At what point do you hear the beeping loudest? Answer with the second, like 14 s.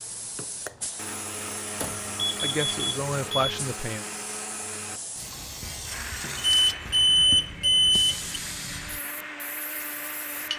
7 s.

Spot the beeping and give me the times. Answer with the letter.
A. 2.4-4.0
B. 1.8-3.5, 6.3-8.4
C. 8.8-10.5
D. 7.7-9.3
B.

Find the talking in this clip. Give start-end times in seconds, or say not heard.
2.4-4.0.